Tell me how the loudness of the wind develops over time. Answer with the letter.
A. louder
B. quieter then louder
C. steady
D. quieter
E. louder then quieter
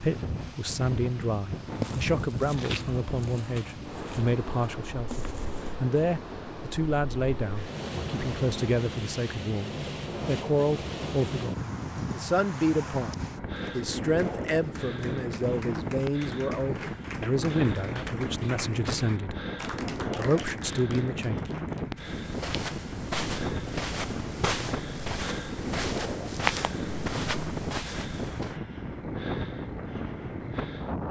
C.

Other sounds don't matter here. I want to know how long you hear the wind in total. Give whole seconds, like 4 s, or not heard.
31 s.